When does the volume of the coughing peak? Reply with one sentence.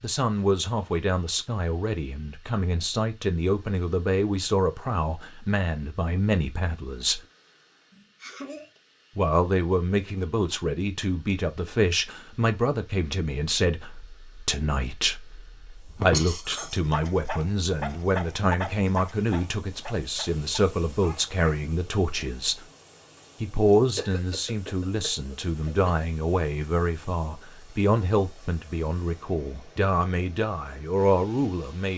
The volume of the coughing peaks at 16 seconds.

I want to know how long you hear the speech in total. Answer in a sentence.
The speech can be heard for 29 seconds in total.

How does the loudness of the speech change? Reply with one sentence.
The loudness of the speech stays about the same.